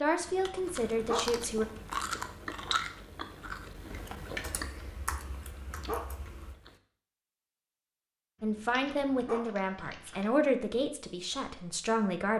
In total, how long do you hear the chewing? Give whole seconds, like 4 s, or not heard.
6 s.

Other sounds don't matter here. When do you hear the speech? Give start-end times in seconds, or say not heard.
0.0-1.6, 8.4-12.3.